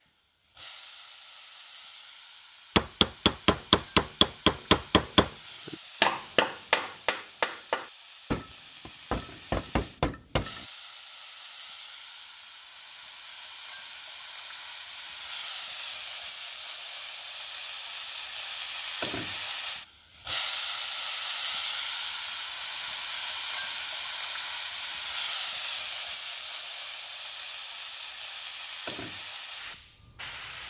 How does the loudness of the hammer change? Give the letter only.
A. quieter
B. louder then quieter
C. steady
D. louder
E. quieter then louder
A.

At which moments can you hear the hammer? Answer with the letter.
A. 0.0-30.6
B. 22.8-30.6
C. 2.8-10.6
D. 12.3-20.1
C.